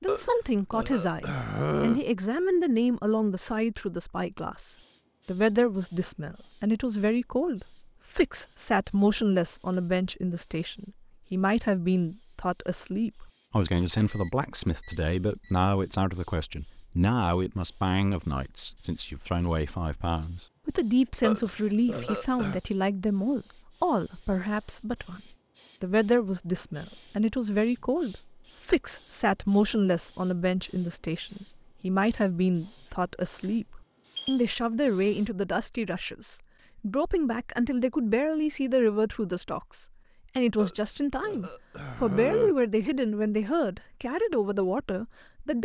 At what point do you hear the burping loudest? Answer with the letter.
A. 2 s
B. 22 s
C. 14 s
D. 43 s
A.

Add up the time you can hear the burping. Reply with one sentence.
You can hear the burping for 5 seconds altogether.